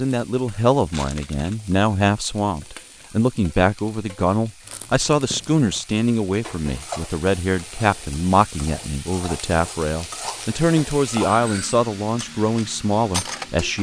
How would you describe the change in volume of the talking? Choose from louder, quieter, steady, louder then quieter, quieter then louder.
steady.